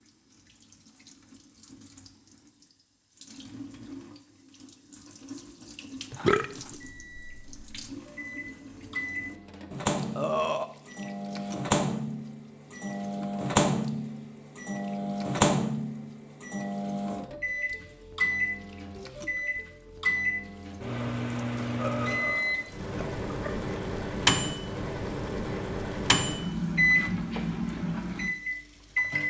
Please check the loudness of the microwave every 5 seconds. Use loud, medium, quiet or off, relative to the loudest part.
off, medium, loud, loud, loud, loud.